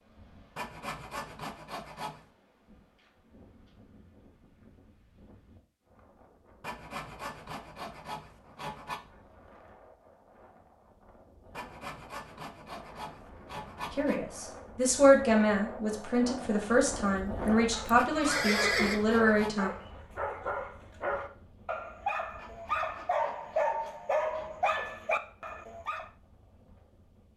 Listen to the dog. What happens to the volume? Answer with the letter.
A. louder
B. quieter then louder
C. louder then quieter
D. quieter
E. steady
A.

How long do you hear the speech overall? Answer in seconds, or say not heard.
6 s.